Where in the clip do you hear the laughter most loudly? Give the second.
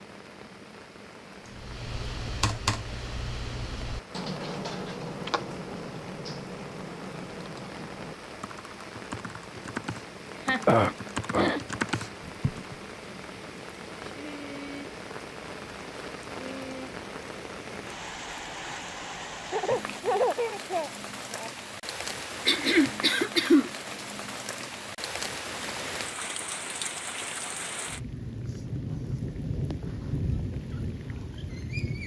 20 s.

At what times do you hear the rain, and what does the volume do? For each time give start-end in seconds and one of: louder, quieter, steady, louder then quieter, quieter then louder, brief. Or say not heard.
0.0-32.0 louder.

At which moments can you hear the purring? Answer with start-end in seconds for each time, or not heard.
not heard.